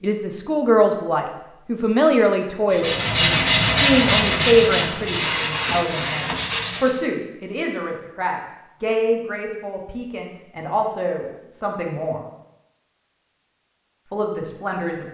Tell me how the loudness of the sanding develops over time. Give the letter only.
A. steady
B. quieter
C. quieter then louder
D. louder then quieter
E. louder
B.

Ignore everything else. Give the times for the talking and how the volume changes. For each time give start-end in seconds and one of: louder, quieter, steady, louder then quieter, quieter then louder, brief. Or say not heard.
0.0-12.2 quieter
14.1-15.0 brief.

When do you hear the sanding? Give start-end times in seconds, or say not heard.
2.7-7.0.